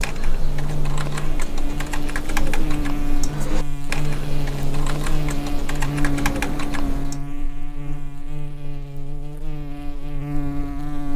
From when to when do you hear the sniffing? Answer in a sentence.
You can't hear the sniffing here.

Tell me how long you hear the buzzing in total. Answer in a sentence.
You can hear the buzzing for 11 seconds altogether.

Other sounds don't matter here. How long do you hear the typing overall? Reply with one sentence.
The typing can be heard for 7 seconds in total.